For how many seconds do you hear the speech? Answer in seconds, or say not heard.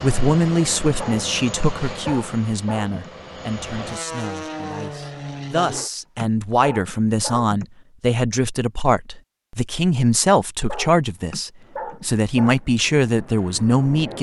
14 s.